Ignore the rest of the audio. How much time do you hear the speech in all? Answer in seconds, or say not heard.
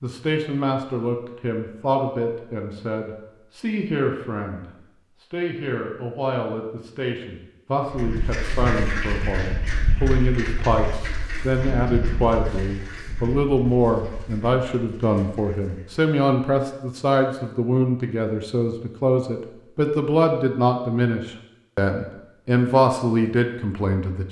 24 s.